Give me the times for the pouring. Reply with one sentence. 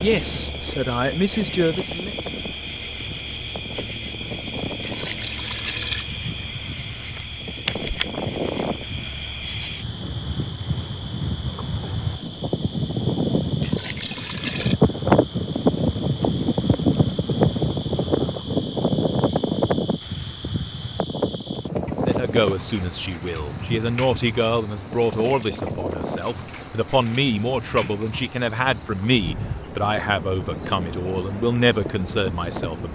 The pouring can be heard from 4.8 to 6.1 s, from 13.6 to 14.8 s and from 25.2 to 25.8 s.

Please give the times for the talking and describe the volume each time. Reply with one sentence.
You can hear the talking briefly from 0.0 to 2.1 s; and from 22.1 to 32.9 s, at a steady volume.